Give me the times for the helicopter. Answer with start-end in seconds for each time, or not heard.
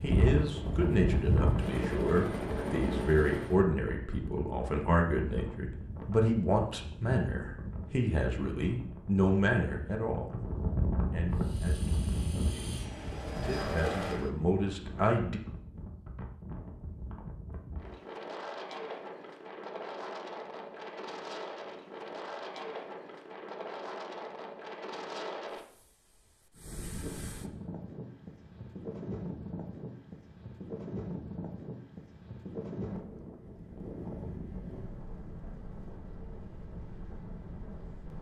0.0-3.6, 11.3-14.3.